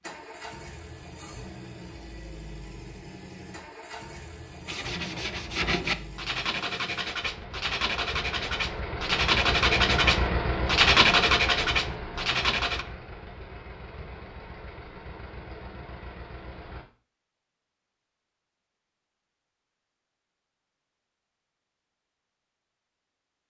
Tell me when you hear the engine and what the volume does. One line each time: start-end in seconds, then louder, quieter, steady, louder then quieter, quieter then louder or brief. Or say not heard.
0.0-16.9 louder then quieter.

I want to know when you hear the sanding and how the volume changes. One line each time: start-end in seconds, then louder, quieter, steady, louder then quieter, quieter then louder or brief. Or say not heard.
4.7-12.8 louder.